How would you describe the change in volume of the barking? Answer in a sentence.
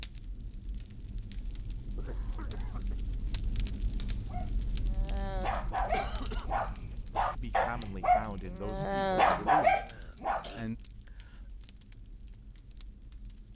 The loudness of the barking goes up.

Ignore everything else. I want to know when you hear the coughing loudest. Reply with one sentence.
The volume of the coughing peaks at 6 seconds.